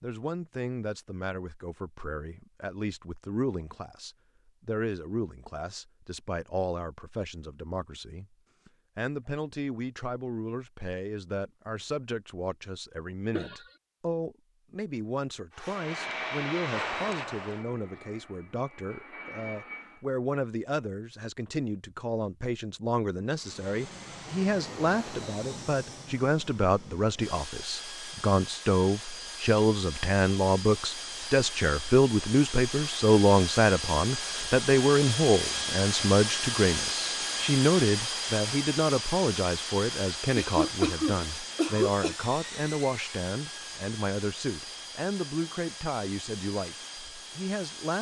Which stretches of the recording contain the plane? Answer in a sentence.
You can hear the plane from 15.5 to 20.0 s and from 23.3 to 47.9 s.